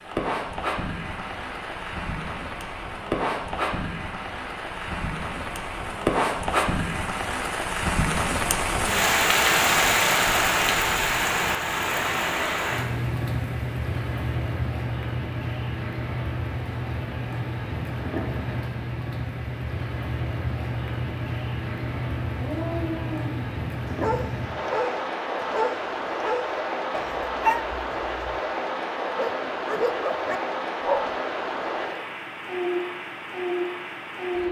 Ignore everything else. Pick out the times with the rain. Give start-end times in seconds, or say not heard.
0.0-34.4.